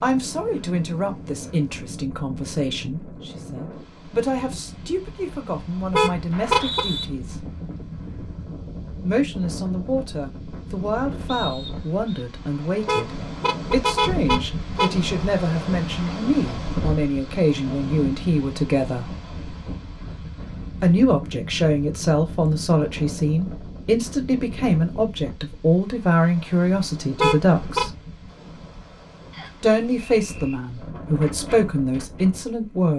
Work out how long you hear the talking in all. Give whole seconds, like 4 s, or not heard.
28 s.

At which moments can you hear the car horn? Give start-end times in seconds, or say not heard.
5.9-6.8, 12.8-15.0, 27.1-27.9.